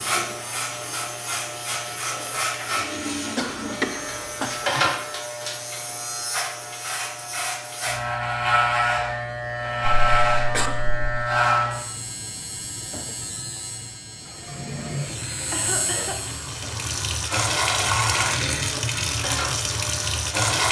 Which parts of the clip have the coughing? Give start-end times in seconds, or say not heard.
3.4-4.9, 9.8-11.2, 15.5-16.2.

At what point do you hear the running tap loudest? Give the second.
18 s.